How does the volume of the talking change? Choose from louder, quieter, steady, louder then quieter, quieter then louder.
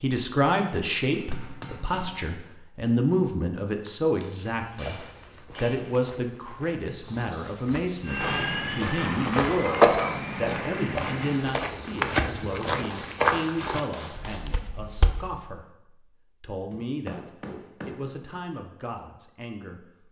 quieter.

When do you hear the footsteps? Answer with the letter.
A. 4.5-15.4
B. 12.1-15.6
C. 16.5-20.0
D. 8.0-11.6
A.